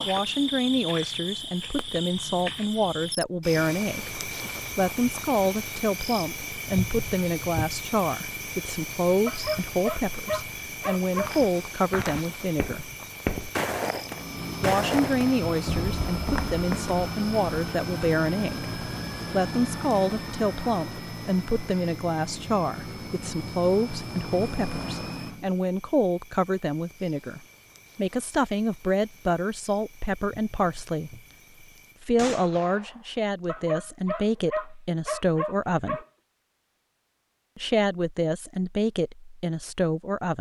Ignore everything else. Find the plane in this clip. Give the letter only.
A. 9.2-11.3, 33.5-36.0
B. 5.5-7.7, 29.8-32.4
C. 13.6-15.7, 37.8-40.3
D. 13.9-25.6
D.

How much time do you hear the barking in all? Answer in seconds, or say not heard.
5 s.